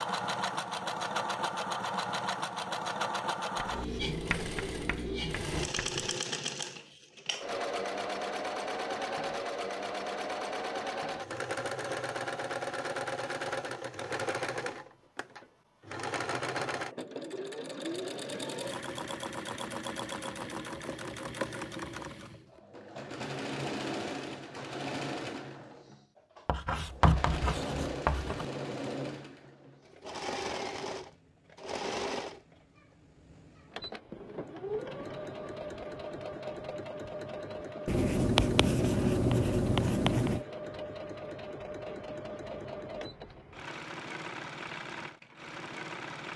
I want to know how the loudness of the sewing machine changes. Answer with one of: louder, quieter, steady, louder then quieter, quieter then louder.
quieter.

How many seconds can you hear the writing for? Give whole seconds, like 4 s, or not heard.
7 s.